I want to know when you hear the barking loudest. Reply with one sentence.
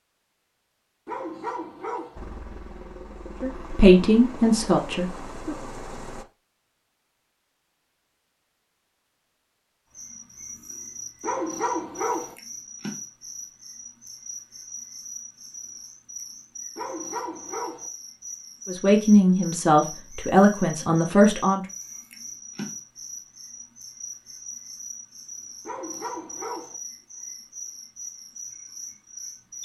The volume of the barking peaks at 12 seconds.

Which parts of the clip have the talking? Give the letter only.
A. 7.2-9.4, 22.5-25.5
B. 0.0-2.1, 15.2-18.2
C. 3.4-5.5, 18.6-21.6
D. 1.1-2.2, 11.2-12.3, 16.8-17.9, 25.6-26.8
C.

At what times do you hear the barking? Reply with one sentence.
You can hear the barking from 1.1 to 2.2 s, from 11.2 to 12.3 s, from 16.8 to 17.9 s and from 25.6 to 26.8 s.